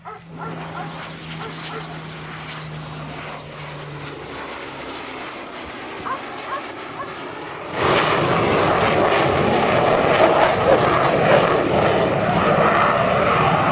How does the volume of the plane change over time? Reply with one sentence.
The loudness of the plane goes up.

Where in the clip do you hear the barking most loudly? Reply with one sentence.
The loudest moment of the barking is at 11 seconds.